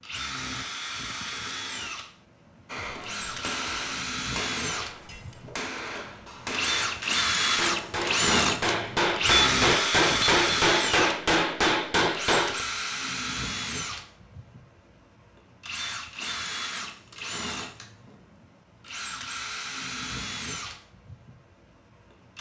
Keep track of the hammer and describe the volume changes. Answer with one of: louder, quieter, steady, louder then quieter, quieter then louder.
louder.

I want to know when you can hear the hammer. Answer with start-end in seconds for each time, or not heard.
2.6-12.7.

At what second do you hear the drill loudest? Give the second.
10 s.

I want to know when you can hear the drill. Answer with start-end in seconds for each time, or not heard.
0.0-11.2, 12.1-21.4.